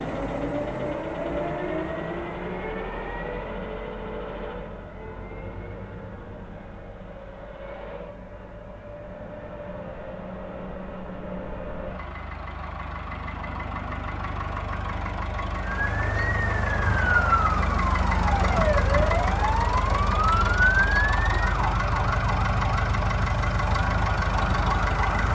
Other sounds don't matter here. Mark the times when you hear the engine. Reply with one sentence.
The engine can be heard from 0.0 to 25.3 s.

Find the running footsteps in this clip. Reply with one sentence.
The running footsteps can't be heard in this clip.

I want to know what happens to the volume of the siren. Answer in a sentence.
The loudness of the siren goes down.